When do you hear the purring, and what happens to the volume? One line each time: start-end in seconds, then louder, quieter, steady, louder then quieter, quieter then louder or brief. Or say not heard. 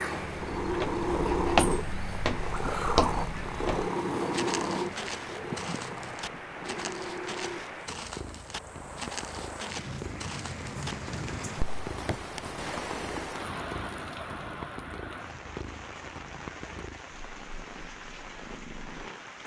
0.0-19.4 quieter.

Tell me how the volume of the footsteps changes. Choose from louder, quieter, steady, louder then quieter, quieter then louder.
quieter.